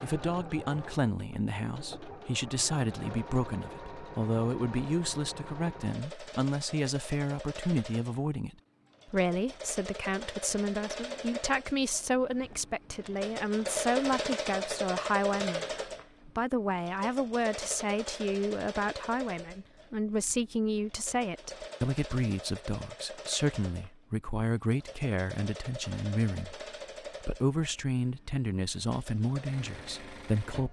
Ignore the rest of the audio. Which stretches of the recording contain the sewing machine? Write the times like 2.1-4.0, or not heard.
0.0-30.6.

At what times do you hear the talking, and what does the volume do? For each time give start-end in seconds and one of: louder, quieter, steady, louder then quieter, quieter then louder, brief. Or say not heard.
0.0-30.6 steady.